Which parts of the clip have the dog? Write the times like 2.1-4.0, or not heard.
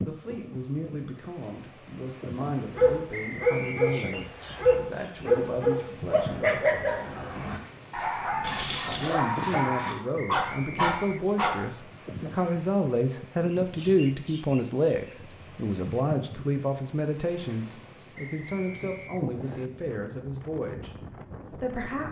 2.8-11.6.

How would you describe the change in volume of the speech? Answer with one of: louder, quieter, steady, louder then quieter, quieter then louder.
louder then quieter.